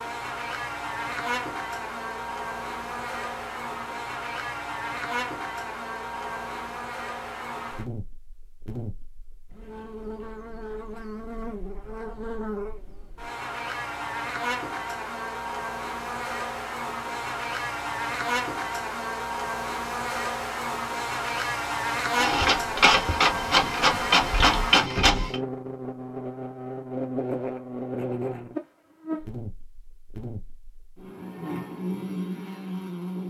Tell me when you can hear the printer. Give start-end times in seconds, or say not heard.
22.1-25.4.